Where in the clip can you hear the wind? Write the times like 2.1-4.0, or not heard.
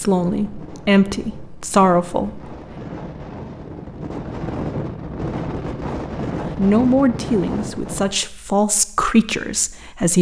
0.0-8.2.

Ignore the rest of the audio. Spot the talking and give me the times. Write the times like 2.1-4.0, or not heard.
0.0-2.5, 6.5-10.1.